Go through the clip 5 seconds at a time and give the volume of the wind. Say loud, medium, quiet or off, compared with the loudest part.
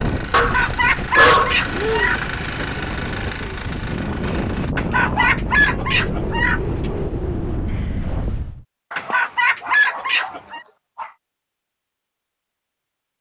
loud, loud, off.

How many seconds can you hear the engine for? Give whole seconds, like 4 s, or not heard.
5 s.